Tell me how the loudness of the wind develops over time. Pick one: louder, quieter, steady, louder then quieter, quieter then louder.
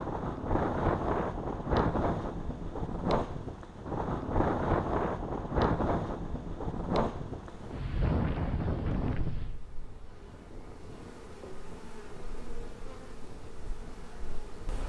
quieter.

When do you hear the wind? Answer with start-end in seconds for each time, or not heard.
0.0-14.8.